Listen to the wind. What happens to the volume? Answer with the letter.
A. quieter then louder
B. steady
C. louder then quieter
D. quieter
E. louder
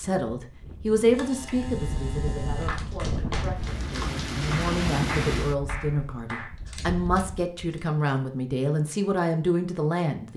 C.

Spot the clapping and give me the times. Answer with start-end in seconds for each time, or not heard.
2.5-6.5.